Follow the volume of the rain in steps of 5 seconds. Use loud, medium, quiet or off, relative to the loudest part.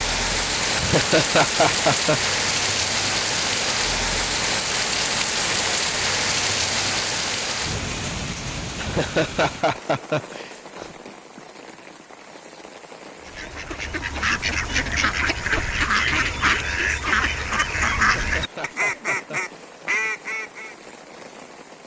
loud, loud, quiet, quiet, quiet.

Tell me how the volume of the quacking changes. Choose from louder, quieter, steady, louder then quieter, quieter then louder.
steady.